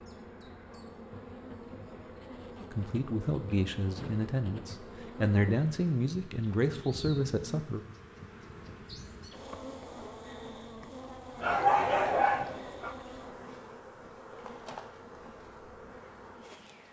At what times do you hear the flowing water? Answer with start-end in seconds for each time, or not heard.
not heard.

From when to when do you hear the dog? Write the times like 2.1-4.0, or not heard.
11.4-12.9.